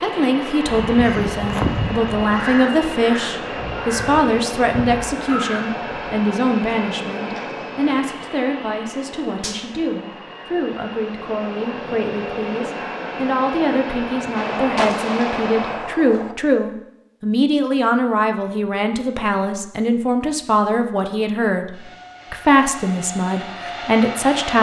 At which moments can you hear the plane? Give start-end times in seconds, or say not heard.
0.0-15.8, 21.7-24.5.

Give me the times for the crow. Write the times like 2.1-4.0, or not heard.
0.7-6.0.